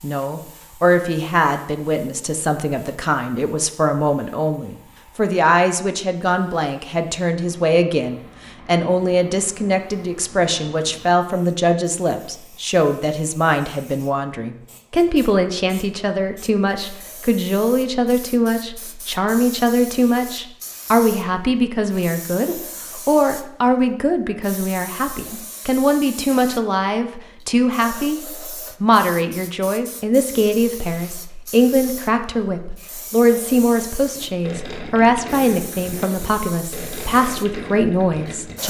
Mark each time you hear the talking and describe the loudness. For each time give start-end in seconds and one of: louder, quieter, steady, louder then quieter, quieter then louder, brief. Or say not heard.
0.0-38.6 steady.